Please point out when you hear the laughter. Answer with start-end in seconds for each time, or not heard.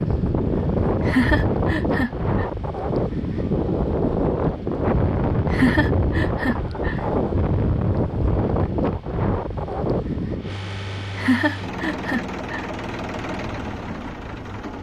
1.1-2.5, 5.5-7.0, 11.2-12.7.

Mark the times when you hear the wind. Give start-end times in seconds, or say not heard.
0.0-11.3.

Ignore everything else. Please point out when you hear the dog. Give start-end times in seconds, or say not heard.
not heard.